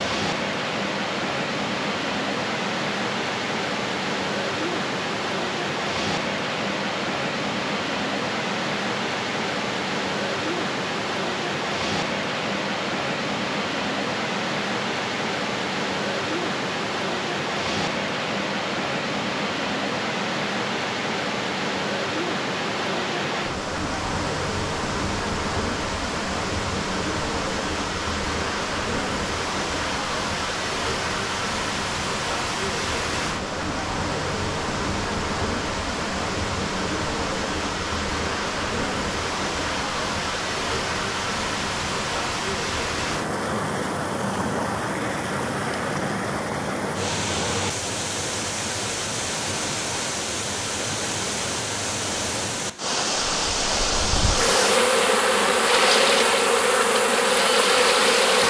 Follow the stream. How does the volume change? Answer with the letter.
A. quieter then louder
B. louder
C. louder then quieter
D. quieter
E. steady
E.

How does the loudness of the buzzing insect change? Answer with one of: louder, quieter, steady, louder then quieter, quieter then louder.
steady.